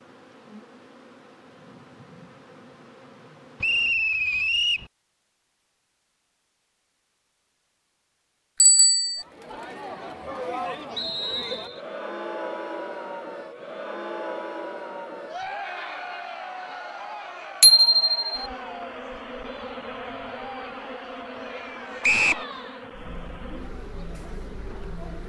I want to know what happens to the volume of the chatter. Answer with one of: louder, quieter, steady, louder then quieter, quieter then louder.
quieter.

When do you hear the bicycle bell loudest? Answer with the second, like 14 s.
18 s.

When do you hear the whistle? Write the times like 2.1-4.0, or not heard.
3.6-4.9, 10.9-11.8, 22.0-22.4.